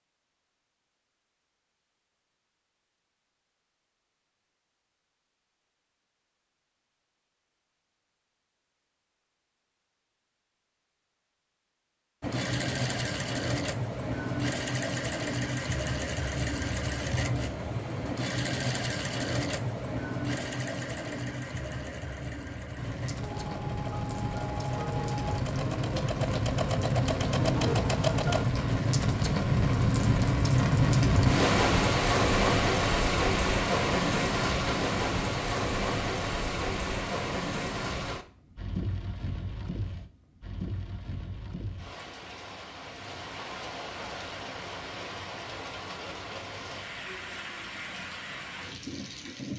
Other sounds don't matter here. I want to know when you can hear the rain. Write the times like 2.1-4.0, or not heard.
22.8-49.5.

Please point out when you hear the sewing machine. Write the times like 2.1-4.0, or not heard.
12.2-28.4.